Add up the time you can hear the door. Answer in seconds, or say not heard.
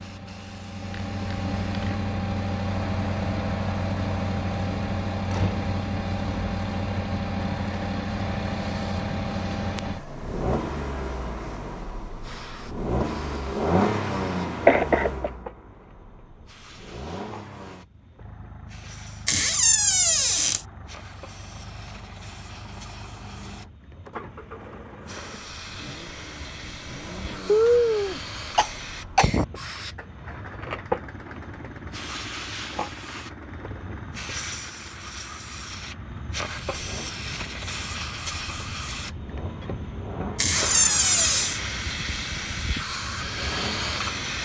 3 s.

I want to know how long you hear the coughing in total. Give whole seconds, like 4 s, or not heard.
3 s.